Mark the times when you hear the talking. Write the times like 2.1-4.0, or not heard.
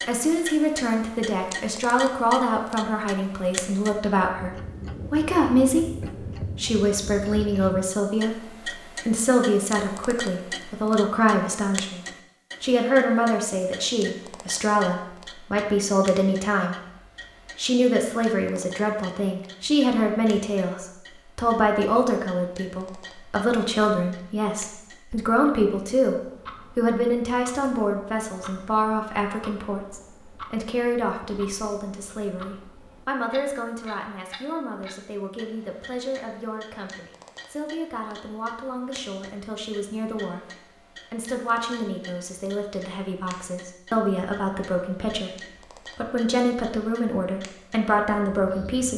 0.1-16.8, 17.6-48.9.